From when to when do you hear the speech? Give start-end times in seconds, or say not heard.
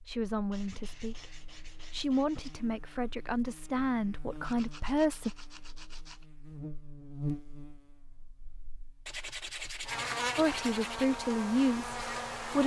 0.0-5.3, 10.3-12.6.